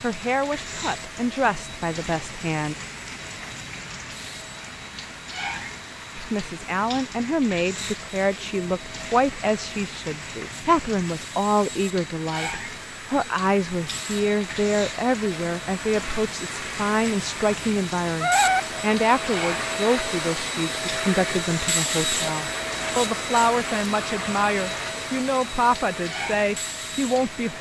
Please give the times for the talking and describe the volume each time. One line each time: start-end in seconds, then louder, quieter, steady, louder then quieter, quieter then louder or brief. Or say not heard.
0.0-2.8 brief
6.2-27.5 steady.